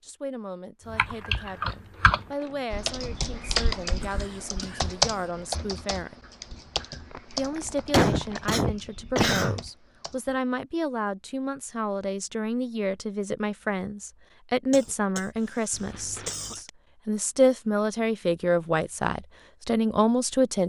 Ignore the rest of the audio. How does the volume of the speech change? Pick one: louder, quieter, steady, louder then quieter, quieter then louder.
louder.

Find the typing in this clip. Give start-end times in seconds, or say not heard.
0.9-10.3.